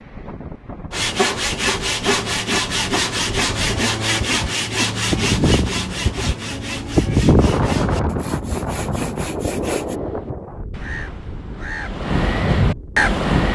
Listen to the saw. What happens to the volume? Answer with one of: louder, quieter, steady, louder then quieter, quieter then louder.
quieter.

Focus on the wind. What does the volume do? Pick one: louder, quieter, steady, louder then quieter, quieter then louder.
louder then quieter.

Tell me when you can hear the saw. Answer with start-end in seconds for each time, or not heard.
0.9-10.0.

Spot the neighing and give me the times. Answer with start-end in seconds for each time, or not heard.
not heard.